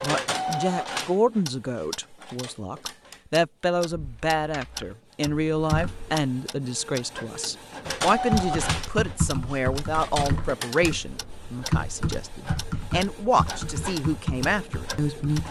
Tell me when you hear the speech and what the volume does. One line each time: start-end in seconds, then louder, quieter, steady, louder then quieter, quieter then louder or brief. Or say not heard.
0.0-15.4 steady.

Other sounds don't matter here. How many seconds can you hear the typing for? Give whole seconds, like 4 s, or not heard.
10 s.